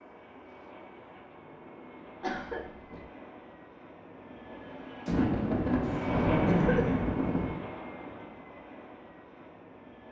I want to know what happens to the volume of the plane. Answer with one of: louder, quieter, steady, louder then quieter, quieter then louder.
louder then quieter.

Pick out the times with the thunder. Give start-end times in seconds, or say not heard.
5.0-7.6.